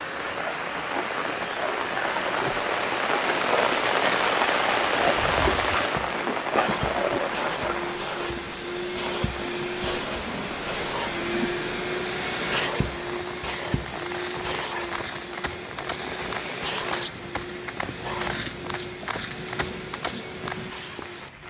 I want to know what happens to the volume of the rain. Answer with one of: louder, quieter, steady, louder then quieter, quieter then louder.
quieter.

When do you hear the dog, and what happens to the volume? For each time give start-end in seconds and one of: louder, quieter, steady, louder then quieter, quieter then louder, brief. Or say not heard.
not heard.